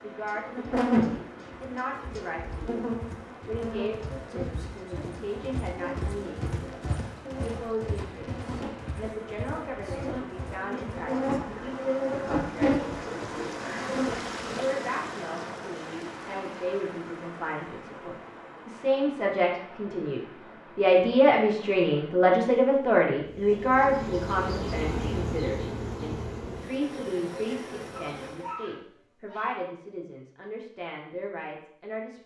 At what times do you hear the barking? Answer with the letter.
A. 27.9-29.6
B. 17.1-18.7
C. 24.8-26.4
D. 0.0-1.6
A.